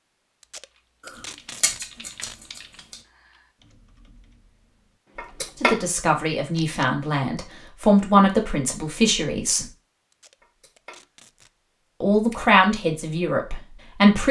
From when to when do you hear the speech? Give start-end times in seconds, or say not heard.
5.6-9.7, 12.0-14.2.